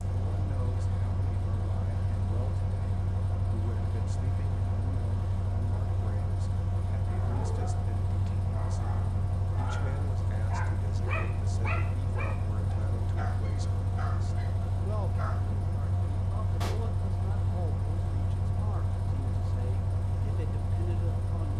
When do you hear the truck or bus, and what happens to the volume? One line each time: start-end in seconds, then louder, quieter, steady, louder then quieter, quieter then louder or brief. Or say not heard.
0.0-21.5 steady.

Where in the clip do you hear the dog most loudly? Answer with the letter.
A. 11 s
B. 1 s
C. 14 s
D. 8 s
A.